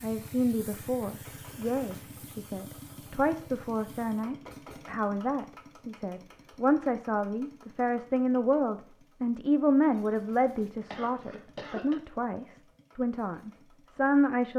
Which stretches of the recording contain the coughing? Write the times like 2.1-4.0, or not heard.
10.8-11.9.